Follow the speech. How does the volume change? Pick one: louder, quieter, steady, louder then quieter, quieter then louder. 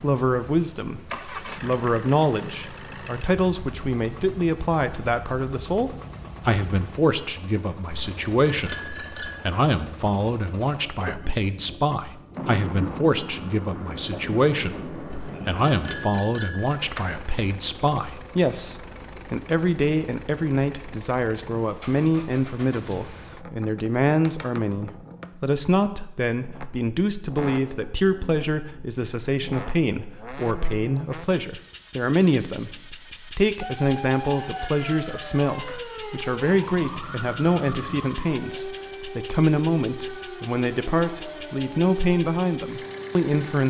steady.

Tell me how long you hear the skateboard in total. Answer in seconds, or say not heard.
not heard.